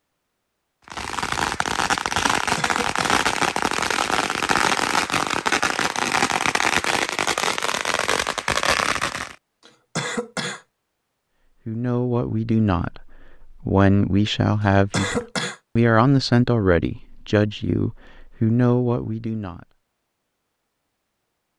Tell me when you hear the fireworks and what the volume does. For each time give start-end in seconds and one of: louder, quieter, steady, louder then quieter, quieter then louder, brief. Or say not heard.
0.8-9.3 steady.